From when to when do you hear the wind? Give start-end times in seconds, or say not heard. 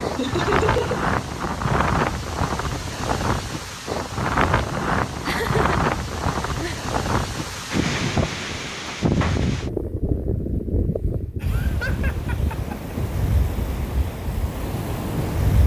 0.0-15.6.